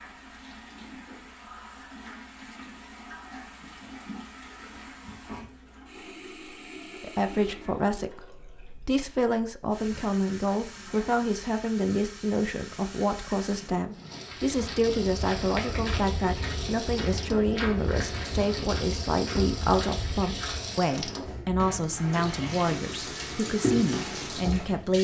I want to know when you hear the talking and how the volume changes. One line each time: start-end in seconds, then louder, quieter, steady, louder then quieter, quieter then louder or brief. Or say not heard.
7.0-24.9 steady.